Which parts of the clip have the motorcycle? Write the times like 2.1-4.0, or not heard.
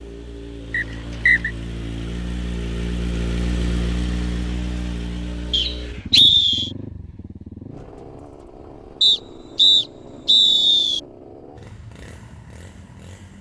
0.0-13.3.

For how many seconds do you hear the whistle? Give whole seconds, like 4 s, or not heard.
4 s.